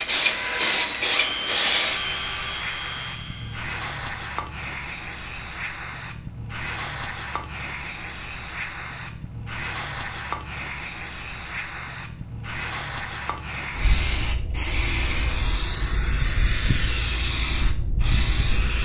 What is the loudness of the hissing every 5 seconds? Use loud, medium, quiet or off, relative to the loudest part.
loud, medium, medium, loud.